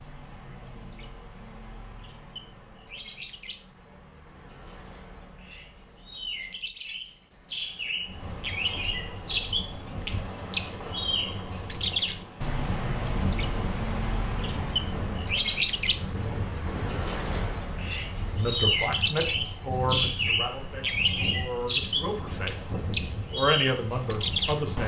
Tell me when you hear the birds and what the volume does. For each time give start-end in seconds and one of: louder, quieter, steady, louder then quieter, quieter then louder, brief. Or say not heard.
0.0-24.8 louder.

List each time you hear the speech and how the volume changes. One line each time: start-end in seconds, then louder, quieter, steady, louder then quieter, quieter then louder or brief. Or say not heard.
18.4-22.6 quieter then louder
23.3-24.8 brief.